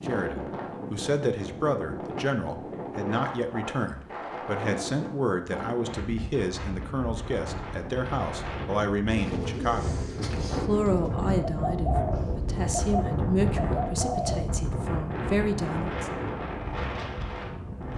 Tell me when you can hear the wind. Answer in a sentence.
The wind can be heard from 0.0 to 17.9 s.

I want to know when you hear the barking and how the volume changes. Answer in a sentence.
You can't hear the barking here.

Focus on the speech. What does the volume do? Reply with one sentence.
The loudness of the speech stays about the same.